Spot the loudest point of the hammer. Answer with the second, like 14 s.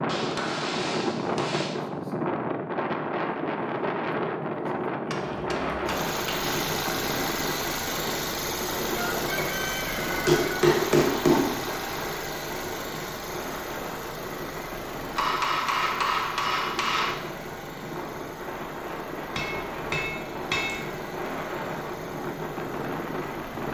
11 s.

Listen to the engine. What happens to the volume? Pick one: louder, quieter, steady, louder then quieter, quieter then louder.
quieter.